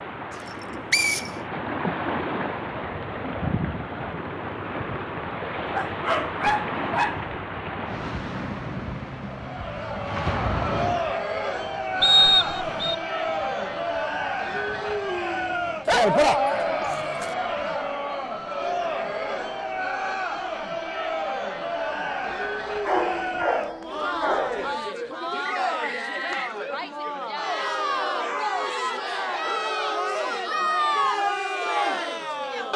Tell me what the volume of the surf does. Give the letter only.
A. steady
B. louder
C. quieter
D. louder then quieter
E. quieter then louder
C.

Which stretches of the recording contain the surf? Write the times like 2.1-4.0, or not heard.
0.0-23.5.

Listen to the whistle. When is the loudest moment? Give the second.
12 s.